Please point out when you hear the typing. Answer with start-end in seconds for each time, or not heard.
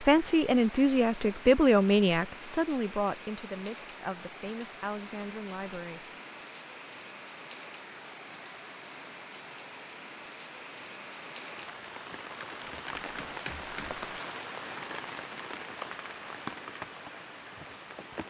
12.7-14.0.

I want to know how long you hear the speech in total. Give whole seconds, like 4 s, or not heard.
6 s.